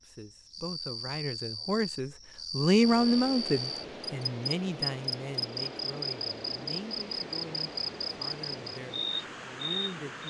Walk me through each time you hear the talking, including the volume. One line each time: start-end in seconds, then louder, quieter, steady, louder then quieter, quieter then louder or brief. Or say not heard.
0.1-10.2 louder then quieter.